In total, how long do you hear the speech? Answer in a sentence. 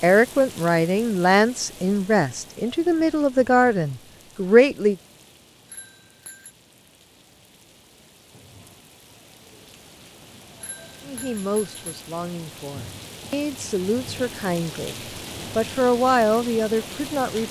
You can hear the speech for 11 seconds altogether.